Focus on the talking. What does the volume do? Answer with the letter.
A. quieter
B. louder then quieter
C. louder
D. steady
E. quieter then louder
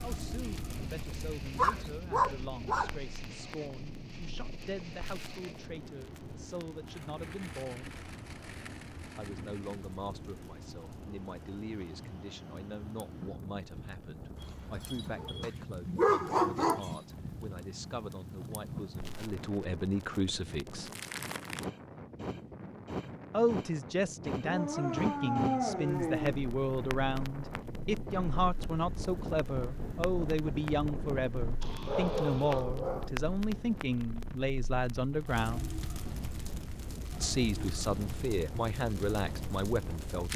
C.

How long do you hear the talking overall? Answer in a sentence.
You can hear the talking for 35 seconds altogether.